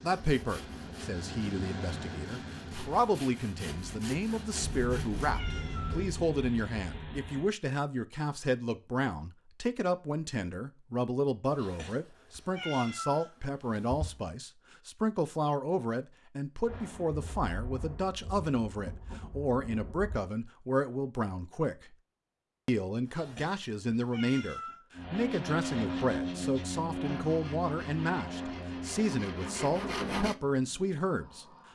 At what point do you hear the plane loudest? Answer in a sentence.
The volume of the plane peaks at 26 seconds.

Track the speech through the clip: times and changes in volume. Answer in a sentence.
You can hear the speech from 0.0 to 21.9 s, at a steady volume; and from 22.6 to 31.4 s, at a steady volume.